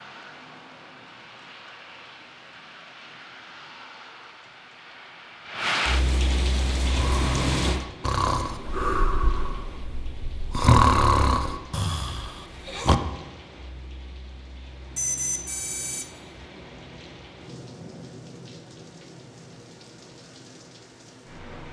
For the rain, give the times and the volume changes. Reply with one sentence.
The rain can be heard from 0.0 to 21.6 s, getting louder then quieter.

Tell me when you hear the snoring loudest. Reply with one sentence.
The volume of the snoring peaks at 11 seconds.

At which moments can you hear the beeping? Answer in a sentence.
The beeping can be heard from 14.9 to 16.1 s.